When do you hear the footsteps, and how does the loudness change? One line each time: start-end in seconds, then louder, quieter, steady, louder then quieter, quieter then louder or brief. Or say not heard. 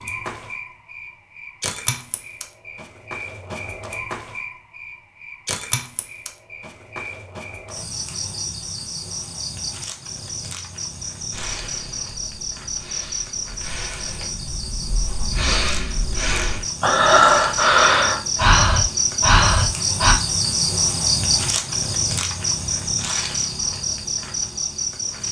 not heard.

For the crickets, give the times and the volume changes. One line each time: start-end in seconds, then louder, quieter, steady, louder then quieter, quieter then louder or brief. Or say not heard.
0.0-25.2 louder.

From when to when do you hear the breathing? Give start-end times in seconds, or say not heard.
11.3-20.1.